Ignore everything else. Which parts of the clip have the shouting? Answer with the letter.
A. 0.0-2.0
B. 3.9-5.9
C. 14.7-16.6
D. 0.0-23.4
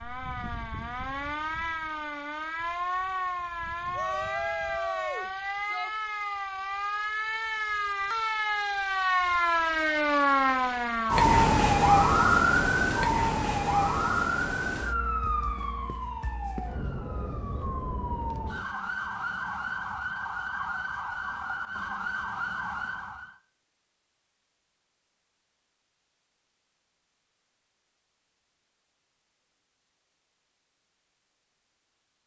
B.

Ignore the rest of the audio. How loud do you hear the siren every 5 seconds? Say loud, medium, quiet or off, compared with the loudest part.
medium, medium, loud, medium, medium, off, off.